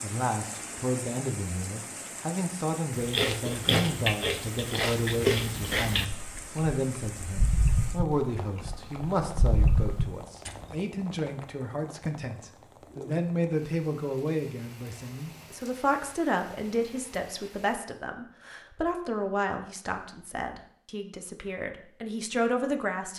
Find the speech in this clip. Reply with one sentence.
You can hear the speech from 0.0 to 23.1 s.